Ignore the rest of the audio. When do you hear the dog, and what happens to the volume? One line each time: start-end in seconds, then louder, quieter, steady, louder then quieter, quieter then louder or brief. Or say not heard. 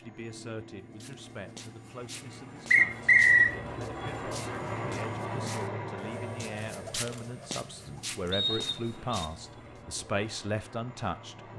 not heard.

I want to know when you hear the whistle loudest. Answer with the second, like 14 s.
3 s.